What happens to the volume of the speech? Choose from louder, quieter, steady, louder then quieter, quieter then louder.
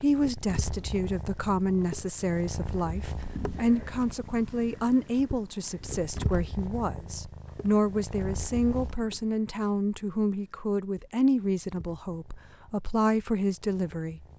steady.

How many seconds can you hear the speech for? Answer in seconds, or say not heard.
14 s.